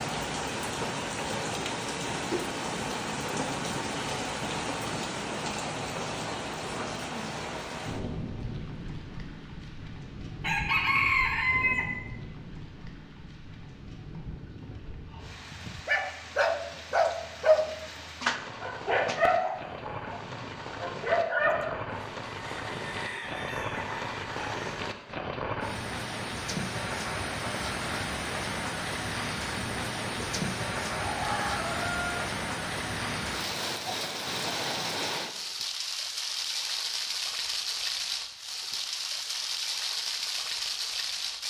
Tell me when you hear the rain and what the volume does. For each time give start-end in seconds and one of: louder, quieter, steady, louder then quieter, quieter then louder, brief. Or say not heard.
0.0-41.4 quieter then louder.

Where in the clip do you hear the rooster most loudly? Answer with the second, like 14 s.
11 s.